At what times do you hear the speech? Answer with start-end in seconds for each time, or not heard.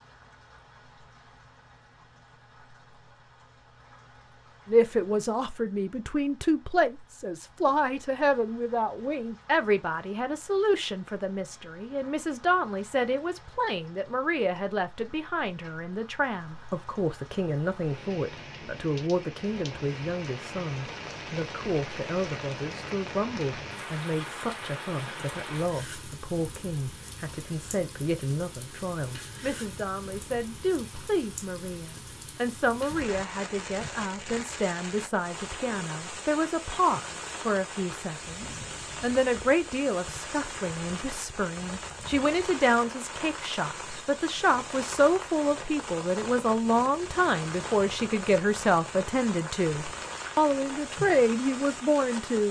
4.7-52.4.